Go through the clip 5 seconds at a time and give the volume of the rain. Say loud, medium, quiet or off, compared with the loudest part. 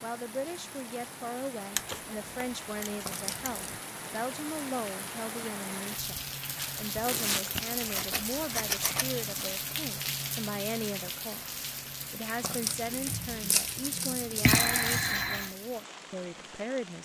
medium, loud, loud, medium.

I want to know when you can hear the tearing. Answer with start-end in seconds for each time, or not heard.
3.0-3.8, 7.0-7.5, 12.4-15.2.